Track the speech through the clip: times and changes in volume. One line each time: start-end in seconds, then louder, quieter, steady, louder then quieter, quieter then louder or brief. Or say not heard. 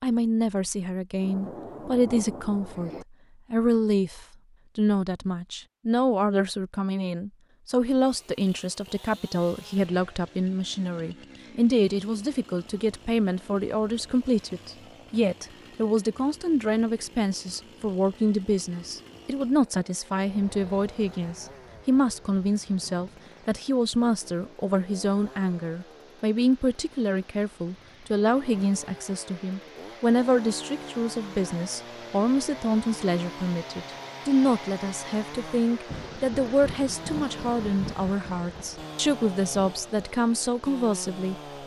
0.0-41.6 steady.